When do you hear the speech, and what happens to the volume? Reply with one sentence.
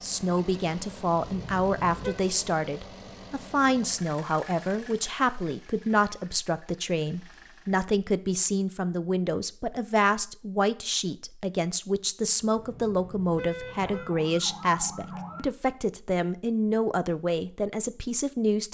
You can hear the speech from 0.0 to 18.6 s, at a steady volume.